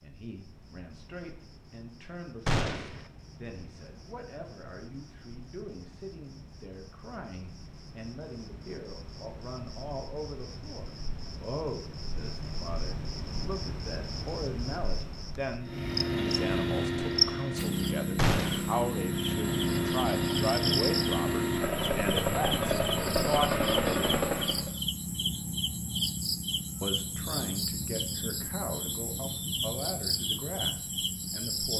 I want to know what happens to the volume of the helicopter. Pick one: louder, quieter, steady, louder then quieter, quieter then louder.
quieter then louder.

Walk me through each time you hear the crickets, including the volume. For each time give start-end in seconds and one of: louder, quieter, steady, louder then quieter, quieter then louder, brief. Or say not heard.
0.0-31.7 louder.